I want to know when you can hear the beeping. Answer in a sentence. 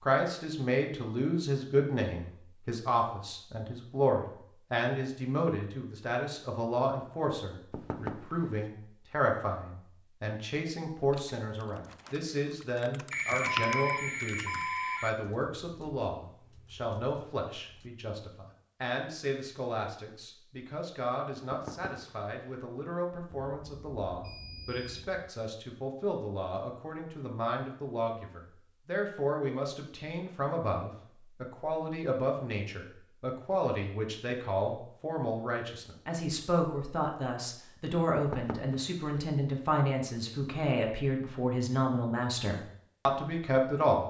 The beeping can be heard from 13.1 to 15.1 s and from 23.4 to 25.3 s.